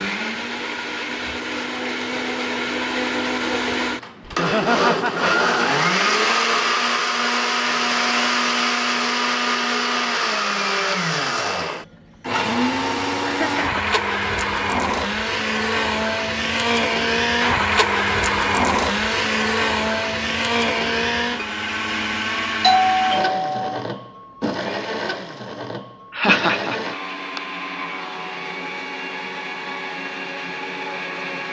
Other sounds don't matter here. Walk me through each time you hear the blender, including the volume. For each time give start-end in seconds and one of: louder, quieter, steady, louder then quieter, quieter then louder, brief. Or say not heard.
0.0-31.4 quieter.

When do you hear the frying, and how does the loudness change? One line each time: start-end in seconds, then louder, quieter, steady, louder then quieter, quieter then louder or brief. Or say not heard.
not heard.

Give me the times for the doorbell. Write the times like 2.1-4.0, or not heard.
22.6-23.8.